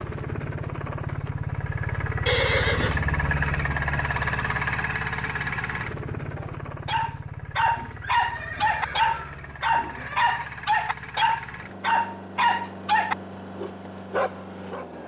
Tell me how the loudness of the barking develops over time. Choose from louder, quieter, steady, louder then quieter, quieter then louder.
steady.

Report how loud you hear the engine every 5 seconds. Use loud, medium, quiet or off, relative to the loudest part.
loud, medium, medium.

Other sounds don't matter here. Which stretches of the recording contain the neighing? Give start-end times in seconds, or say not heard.
2.2-3.0, 7.8-10.5.